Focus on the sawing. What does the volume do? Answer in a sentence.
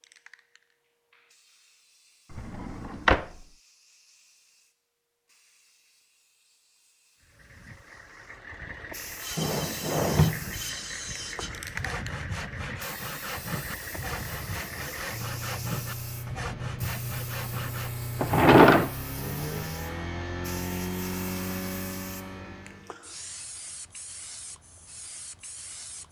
The loudness of the sawing stays about the same.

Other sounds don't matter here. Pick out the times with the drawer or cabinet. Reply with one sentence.
You can hear the drawer or cabinet from 2.4 to 3.2 s, from 9.3 to 10.6 s and from 18.2 to 18.9 s.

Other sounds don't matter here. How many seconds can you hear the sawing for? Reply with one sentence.
You can hear the sawing for 9 seconds altogether.